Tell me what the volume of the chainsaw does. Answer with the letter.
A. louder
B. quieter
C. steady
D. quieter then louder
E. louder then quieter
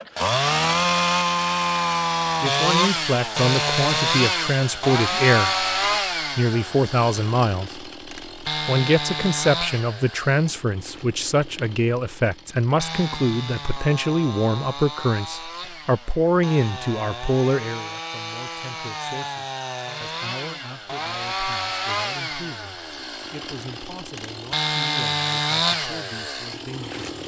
D.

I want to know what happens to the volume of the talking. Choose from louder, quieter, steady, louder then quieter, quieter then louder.
quieter.